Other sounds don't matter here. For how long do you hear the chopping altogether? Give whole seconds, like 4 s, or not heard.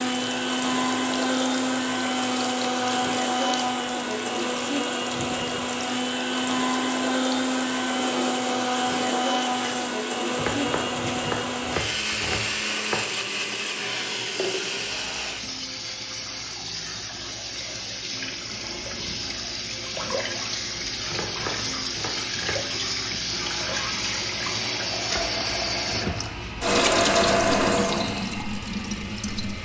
4 s.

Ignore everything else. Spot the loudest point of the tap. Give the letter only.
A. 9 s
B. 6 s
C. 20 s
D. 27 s
D.